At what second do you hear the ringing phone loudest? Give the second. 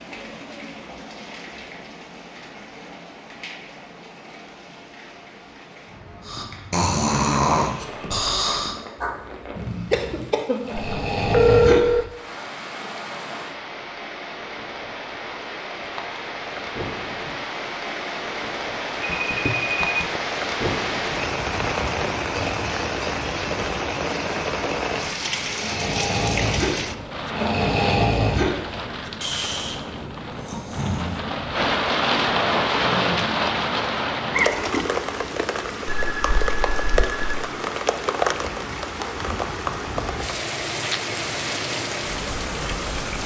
12 s.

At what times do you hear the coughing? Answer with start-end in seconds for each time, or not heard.
9.9-10.9.